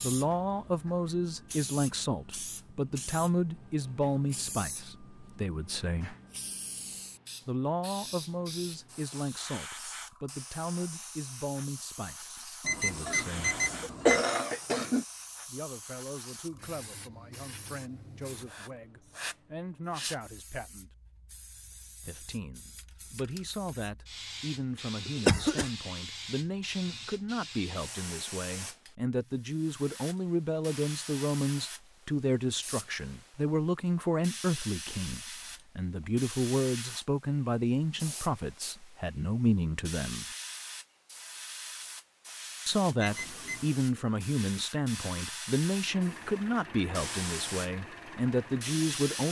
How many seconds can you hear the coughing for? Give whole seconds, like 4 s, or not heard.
3 s.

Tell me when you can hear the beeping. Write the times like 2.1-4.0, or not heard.
12.6-14.2, 43.0-43.8.